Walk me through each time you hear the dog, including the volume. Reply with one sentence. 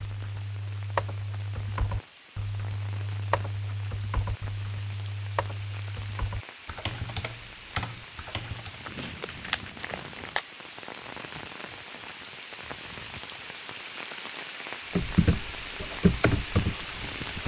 The dog can't be heard in this clip.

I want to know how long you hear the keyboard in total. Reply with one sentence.
You can hear the keyboard for 11 seconds altogether.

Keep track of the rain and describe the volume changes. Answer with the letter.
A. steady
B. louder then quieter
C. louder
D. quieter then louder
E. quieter
C.